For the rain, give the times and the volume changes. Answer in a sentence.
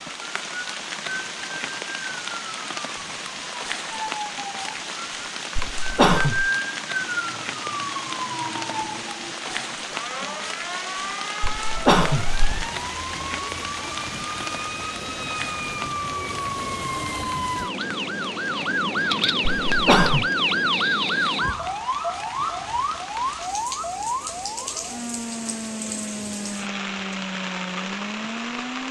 The rain can be heard from 0.0 to 28.8 s, getting quieter then louder.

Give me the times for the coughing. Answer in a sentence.
You can hear the coughing from 5.5 to 6.5 s, from 11.4 to 12.7 s and from 19.6 to 20.2 s.